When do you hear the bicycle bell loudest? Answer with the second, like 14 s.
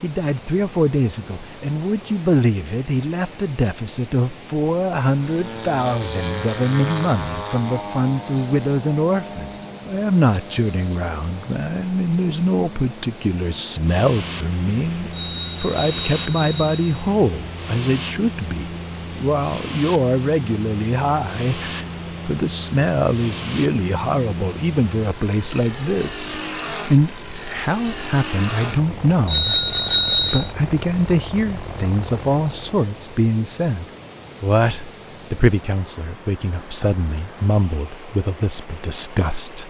30 s.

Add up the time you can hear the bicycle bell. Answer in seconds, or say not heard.
3 s.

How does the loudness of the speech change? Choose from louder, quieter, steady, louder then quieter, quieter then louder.
steady.